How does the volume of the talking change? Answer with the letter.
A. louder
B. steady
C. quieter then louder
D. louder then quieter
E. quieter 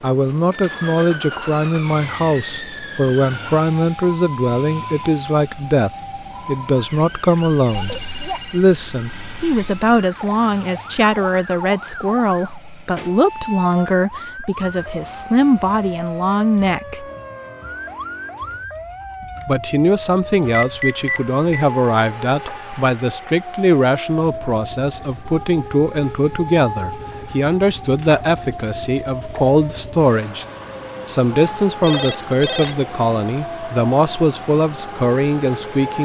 B.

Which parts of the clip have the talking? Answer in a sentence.
You can hear the talking from 0.0 to 17.1 s, from 19.4 to 30.4 s and from 31.1 to 36.0 s.